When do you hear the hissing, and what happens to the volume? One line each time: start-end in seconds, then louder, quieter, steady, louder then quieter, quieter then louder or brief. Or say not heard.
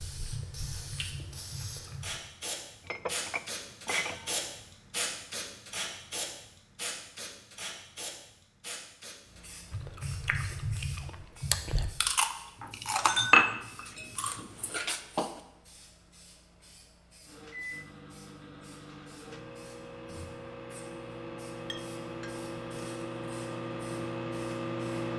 0.0-25.1 quieter.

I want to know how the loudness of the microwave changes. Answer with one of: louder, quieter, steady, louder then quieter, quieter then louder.
louder.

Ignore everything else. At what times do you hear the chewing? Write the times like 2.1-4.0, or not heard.
0.0-2.1, 9.7-15.3.